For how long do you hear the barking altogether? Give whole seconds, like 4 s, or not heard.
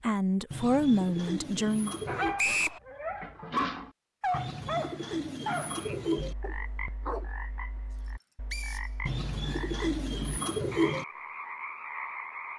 6 s.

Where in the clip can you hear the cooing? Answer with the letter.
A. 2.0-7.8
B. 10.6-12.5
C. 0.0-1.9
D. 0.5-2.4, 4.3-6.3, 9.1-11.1
D.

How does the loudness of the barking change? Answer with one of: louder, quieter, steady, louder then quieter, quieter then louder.
louder then quieter.